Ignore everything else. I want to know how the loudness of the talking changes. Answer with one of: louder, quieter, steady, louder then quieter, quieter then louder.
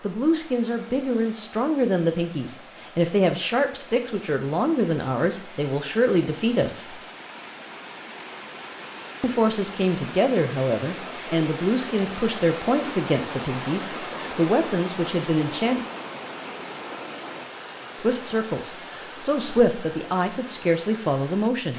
steady.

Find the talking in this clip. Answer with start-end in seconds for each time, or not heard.
0.0-7.0, 9.2-15.8, 18.0-21.7.